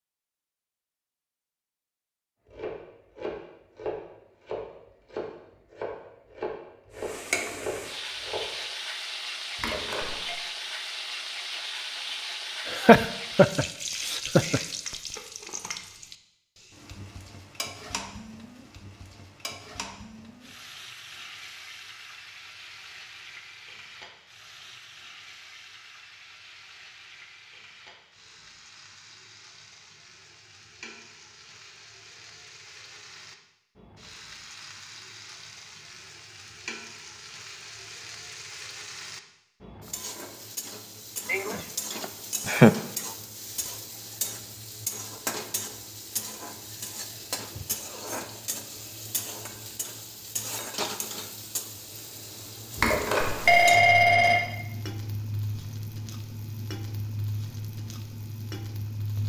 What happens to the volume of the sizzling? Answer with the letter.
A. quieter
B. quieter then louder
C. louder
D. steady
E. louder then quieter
B.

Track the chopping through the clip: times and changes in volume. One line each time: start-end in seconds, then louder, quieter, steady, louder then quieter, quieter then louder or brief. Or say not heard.
2.5-8.6 steady.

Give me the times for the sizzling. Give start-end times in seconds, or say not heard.
7.0-59.2.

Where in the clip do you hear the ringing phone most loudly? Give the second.
54 s.